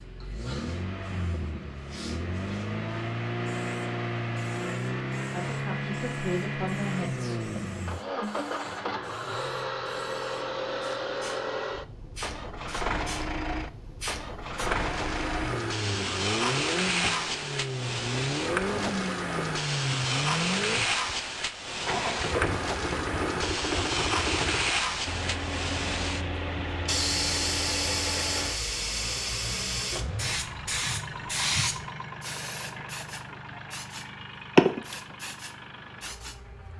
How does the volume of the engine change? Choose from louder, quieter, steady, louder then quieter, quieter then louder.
quieter.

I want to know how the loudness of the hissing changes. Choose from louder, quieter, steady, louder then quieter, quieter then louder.
louder.